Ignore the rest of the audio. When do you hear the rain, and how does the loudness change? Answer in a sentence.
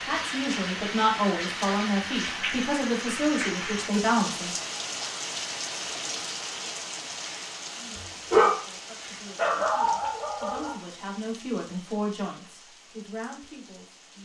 The rain can be heard from 0.0 to 14.1 s, getting quieter.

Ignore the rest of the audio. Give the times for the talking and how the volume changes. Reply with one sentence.
You can hear the talking from 0.0 to 4.5 s, at a steady volume; and from 7.7 to 14.1 s, getting louder then quieter.